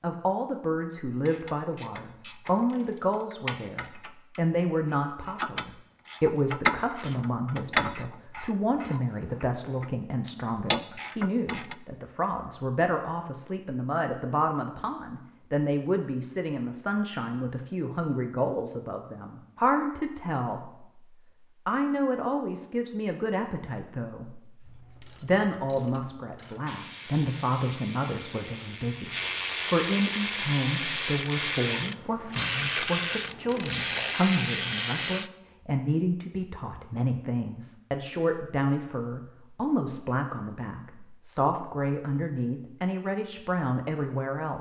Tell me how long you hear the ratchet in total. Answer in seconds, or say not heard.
21 s.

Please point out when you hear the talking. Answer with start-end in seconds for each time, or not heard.
0.0-20.9, 21.6-44.5.